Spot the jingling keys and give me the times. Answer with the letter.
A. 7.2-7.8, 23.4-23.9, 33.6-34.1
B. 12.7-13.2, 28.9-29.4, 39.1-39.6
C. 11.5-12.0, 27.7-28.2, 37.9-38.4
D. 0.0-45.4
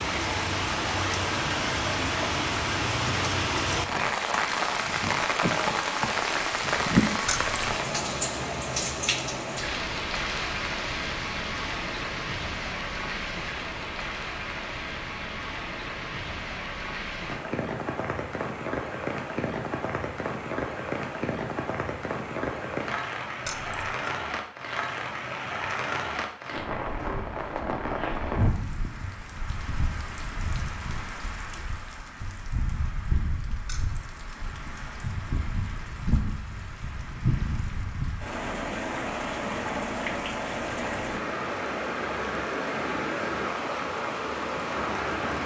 A.